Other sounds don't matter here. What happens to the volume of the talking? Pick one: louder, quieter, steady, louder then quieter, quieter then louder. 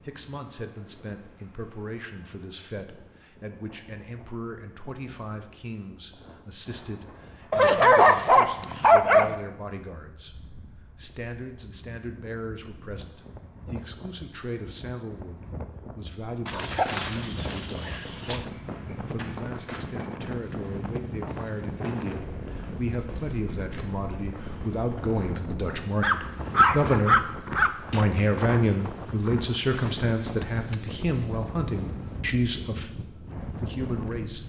louder.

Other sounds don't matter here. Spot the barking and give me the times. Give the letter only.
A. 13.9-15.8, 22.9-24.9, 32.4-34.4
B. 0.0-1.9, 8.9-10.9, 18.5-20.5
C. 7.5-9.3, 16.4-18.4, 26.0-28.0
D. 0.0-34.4
C.